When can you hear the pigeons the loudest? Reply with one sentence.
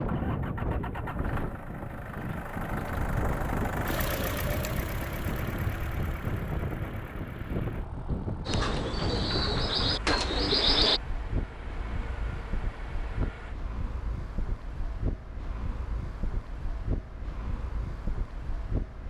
The volume of the pigeons peaks at 11 seconds.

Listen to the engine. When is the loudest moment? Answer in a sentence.
The loudest moment of the engine is at 4 seconds.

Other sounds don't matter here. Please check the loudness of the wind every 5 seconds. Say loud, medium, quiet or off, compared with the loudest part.
loud, loud, medium, medium.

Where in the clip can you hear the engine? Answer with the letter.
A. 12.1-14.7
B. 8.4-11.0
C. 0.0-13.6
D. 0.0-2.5
C.